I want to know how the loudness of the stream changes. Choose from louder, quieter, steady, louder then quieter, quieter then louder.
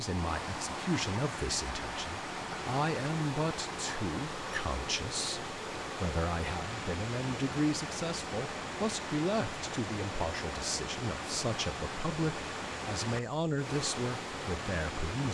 steady.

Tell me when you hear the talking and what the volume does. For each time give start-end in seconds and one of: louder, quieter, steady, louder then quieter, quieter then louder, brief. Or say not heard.
0.0-15.2 steady.